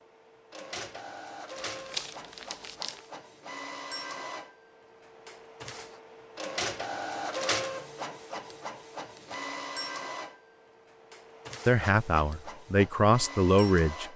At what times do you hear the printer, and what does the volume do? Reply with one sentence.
The printer can be heard from 0.0 to 14.1 s, getting louder then quieter.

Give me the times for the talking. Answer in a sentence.
The talking can be heard from 11.7 to 14.1 s.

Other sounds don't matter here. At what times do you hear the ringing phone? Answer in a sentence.
You can't hear the ringing phone here.